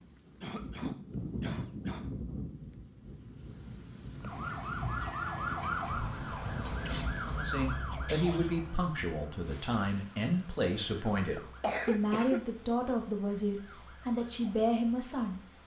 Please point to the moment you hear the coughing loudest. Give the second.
12 s.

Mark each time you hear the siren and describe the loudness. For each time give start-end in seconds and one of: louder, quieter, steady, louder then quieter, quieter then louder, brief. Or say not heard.
4.2-15.6 quieter.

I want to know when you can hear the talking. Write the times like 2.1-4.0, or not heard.
7.2-15.4.